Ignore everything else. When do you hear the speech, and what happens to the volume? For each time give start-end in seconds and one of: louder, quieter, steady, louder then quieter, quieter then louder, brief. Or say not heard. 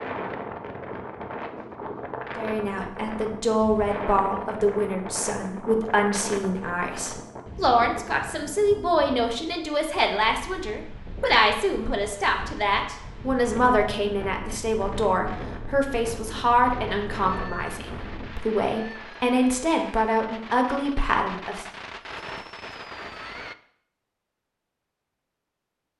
2.4-21.6 steady.